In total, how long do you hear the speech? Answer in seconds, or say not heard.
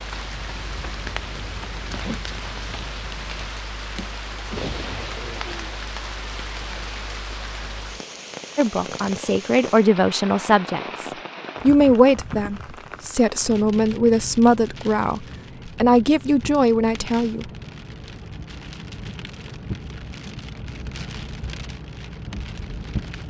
9 s.